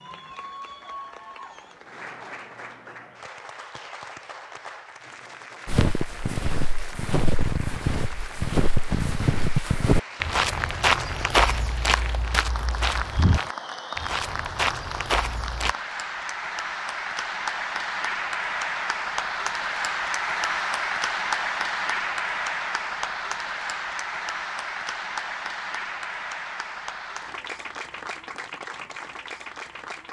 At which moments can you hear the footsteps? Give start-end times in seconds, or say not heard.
5.7-15.8.